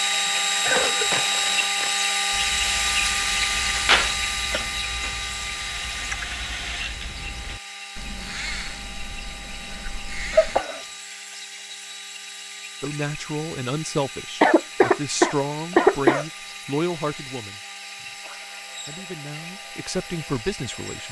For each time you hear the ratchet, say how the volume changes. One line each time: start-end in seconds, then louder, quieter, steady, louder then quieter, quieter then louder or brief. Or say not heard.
0.7-10.7 louder then quieter.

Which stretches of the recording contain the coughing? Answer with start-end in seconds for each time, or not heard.
0.1-1.3, 10.3-10.8, 14.4-16.2.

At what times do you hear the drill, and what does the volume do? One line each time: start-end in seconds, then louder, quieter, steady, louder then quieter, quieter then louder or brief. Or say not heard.
0.0-21.0 quieter.